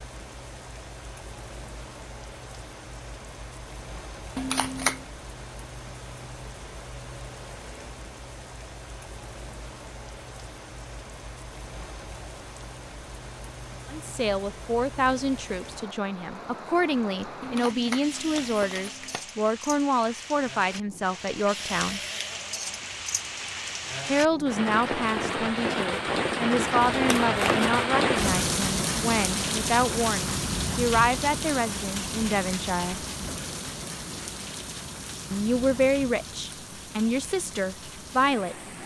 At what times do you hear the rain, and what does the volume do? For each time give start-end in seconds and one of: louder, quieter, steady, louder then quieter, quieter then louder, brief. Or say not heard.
0.0-38.8 louder then quieter.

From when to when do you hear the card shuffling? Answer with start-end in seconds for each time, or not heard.
4.3-5.0, 17.4-19.2, 26.8-27.9.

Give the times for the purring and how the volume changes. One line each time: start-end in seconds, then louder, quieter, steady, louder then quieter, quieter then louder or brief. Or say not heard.
not heard.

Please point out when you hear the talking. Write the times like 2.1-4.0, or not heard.
13.9-22.0, 24.1-33.0, 35.3-38.5.